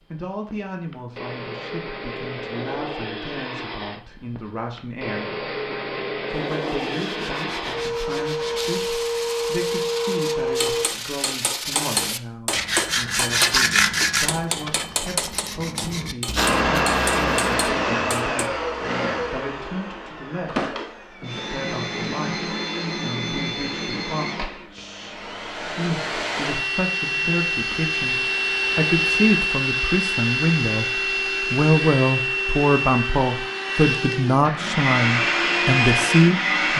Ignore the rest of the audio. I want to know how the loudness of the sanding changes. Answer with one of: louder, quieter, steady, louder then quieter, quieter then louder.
louder then quieter.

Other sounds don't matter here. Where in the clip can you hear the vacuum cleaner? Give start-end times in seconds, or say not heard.
0.0-10.8, 16.4-36.7.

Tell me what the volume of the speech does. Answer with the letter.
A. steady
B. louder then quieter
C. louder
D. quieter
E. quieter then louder
C.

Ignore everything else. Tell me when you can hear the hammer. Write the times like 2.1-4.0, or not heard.
10.6-18.5.